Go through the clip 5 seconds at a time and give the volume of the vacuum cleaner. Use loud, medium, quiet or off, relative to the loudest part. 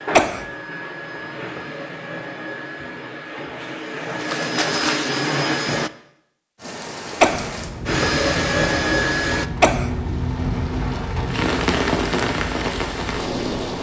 medium, loud, off.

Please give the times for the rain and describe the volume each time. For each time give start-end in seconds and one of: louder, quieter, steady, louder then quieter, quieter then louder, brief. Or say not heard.
6.5-13.7 louder.